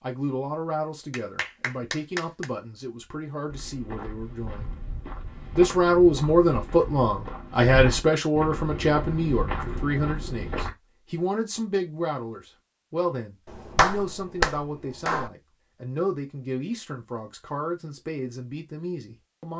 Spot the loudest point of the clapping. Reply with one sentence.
The volume of the clapping peaks at 14 seconds.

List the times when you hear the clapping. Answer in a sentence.
You can hear the clapping from 1.1 to 2.5 s and from 13.4 to 15.3 s.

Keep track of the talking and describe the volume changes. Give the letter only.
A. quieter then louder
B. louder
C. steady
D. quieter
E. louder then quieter
E.